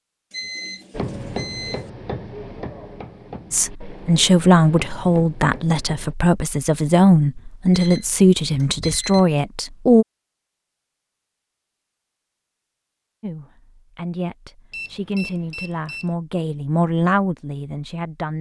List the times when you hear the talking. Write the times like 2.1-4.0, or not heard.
3.5-10.1, 13.2-18.3.